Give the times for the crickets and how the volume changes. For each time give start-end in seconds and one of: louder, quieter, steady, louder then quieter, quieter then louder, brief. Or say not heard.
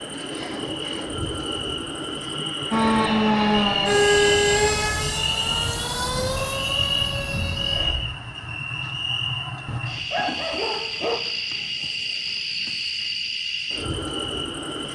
0.0-14.9 steady.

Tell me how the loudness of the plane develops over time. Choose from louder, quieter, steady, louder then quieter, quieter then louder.
quieter.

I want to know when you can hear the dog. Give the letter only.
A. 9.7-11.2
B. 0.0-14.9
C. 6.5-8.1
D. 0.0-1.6
A.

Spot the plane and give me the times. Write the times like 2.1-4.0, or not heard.
2.7-8.0.